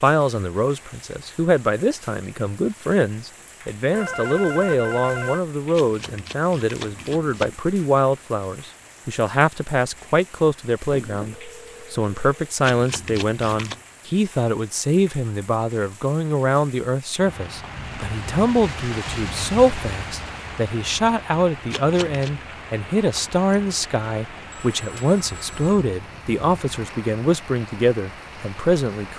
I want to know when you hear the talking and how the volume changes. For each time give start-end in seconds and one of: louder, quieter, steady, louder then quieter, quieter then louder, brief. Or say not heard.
0.0-29.1 steady.